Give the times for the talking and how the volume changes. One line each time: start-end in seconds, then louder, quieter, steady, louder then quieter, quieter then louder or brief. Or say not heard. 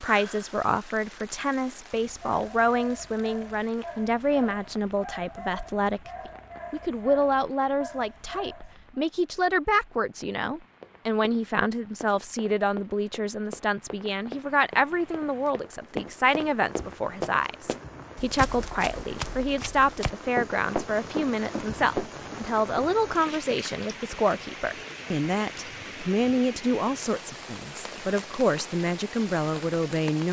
0.0-30.2 steady.